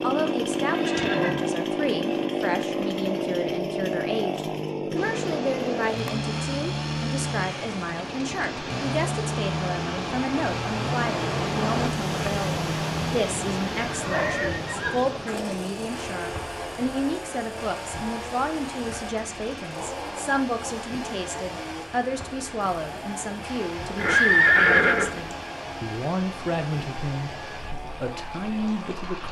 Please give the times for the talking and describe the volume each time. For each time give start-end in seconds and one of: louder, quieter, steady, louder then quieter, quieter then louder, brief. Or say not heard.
0.0-29.2 steady.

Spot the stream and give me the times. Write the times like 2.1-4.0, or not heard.
5.0-29.2.